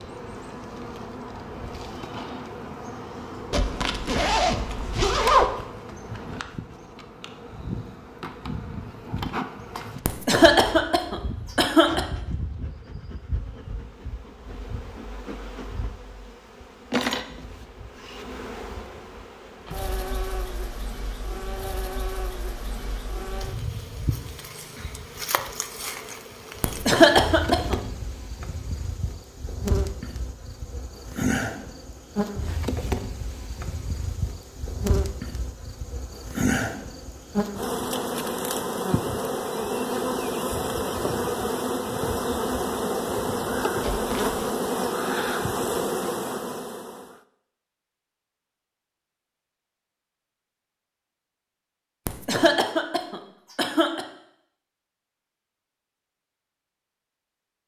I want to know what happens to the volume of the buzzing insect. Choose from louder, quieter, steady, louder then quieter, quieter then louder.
louder.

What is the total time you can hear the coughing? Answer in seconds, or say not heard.
5 s.